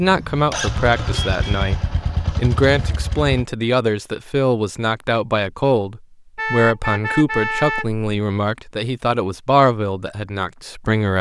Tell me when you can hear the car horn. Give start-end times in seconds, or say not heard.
0.8-1.8, 6.3-8.1.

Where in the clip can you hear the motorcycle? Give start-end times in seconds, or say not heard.
0.0-3.5.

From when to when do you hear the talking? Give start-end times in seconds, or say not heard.
0.0-11.1.